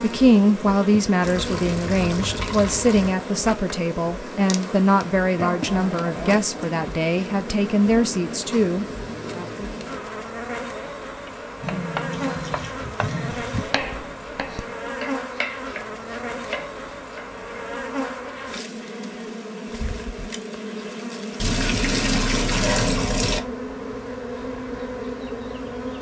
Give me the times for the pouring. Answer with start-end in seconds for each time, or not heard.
1.2-3.1, 12.1-13.8, 21.4-23.4.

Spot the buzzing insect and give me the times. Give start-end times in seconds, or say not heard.
0.0-25.9.